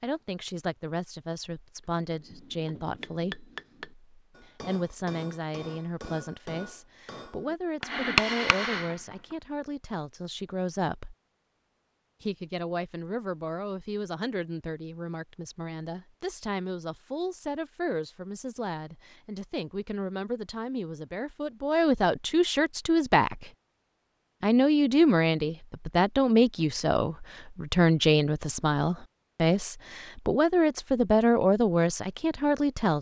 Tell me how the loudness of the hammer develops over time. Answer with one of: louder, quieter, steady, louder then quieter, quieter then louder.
louder.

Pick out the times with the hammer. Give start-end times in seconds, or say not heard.
2.1-9.2.